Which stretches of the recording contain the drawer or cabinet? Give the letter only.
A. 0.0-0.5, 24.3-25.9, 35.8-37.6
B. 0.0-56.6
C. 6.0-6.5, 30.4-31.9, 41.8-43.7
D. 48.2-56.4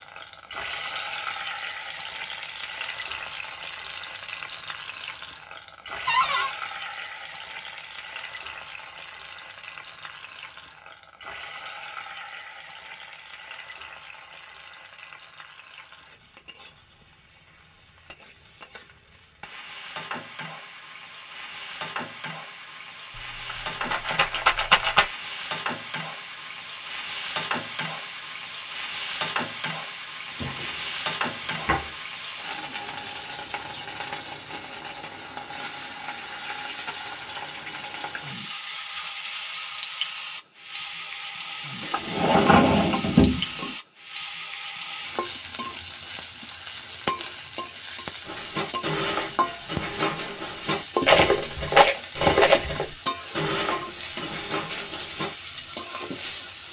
C.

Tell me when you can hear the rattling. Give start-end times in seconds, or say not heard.
23.1-25.1, 51.0-52.6.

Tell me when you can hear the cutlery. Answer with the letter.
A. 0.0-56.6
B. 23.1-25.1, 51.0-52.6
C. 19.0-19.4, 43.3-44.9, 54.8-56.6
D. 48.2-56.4
D.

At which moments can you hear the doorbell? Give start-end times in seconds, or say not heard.
not heard.